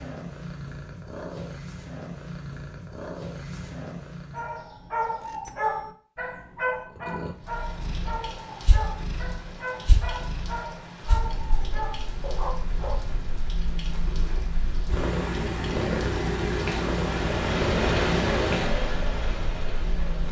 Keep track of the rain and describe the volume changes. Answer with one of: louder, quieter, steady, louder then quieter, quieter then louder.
louder.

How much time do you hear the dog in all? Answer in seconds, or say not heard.
9 s.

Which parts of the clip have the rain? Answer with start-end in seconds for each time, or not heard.
7.3-20.2.